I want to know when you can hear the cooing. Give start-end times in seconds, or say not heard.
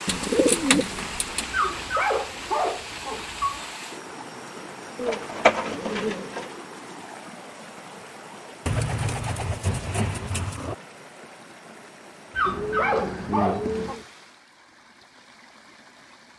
0.1-1.4, 5.0-6.5, 8.7-10.8, 12.4-14.1.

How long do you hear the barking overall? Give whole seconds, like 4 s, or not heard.
4 s.